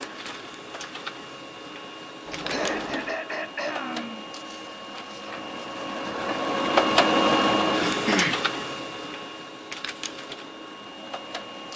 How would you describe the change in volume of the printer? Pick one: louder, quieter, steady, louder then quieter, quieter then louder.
louder then quieter.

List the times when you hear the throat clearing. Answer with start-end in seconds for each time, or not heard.
2.3-4.2, 7.8-8.4.